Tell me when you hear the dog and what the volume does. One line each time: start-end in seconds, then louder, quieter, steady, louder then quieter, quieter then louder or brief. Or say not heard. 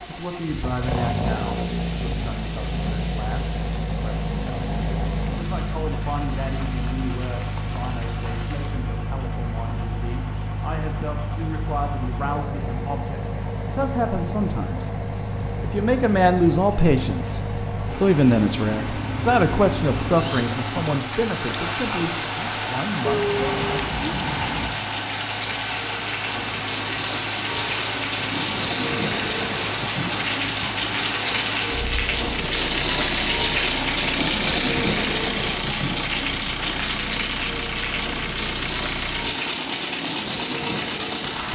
not heard.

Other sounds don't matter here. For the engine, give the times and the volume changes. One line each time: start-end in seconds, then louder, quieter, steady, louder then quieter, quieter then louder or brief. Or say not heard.
0.0-41.5 steady.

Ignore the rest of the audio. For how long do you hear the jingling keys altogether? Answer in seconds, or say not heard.
2 s.